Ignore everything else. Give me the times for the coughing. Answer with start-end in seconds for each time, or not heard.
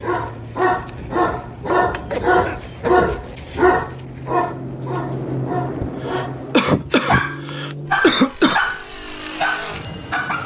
2.0-3.1, 5.8-8.6.